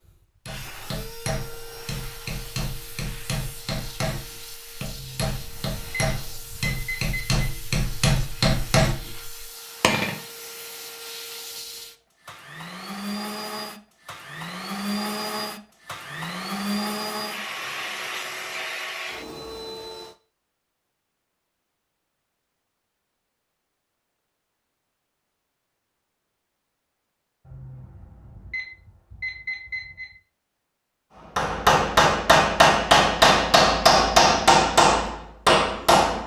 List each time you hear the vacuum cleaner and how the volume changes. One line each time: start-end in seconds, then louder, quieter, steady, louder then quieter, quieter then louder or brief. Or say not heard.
0.0-20.1 louder.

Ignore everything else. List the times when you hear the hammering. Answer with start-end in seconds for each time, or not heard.
0.5-10.2, 31.4-36.2.